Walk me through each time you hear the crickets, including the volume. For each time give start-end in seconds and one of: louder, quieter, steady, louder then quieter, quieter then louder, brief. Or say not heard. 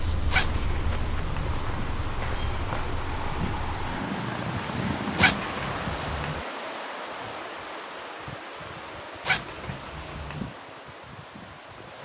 0.0-11.9 louder then quieter.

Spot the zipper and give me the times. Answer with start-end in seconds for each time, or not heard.
0.3-1.6, 5.2-6.4, 9.2-10.5.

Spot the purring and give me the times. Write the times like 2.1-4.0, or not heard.
0.0-5.5.